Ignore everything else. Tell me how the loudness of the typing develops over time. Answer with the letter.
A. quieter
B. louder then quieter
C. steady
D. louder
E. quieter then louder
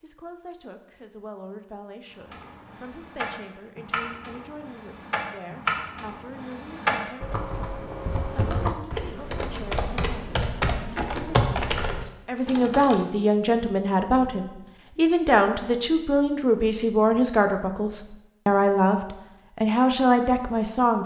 D.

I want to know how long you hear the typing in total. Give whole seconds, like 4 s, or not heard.
11 s.